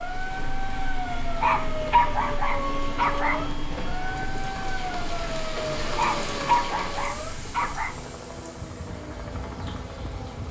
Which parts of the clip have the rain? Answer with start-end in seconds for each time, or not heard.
0.0-10.4.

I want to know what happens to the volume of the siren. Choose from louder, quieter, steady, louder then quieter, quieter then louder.
quieter.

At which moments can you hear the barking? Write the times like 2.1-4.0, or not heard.
1.2-3.5, 5.8-8.0.